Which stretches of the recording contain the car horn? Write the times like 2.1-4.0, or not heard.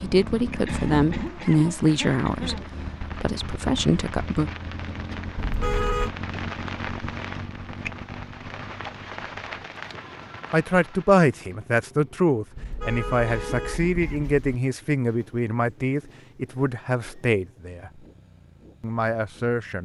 5.3-6.1, 12.6-14.6.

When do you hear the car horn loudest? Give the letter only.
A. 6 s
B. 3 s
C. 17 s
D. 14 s
A.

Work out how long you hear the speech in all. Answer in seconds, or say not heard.
13 s.